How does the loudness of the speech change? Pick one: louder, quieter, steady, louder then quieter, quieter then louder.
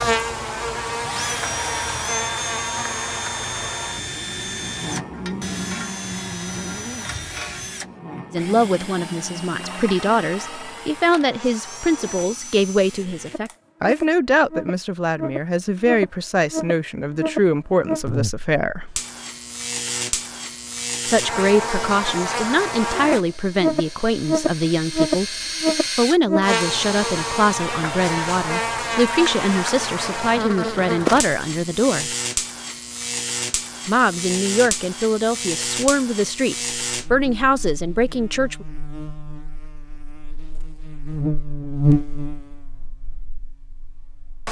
steady.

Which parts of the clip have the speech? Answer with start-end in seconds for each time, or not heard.
8.3-18.9, 21.1-32.1, 33.9-38.6.